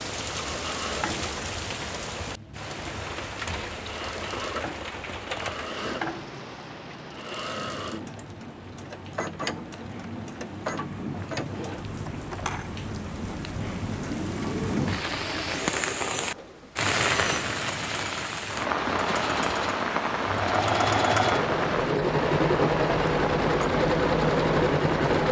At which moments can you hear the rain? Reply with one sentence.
You can hear the rain from 0.0 to 25.2 s.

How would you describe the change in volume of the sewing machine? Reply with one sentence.
The volume of the sewing machine goes up.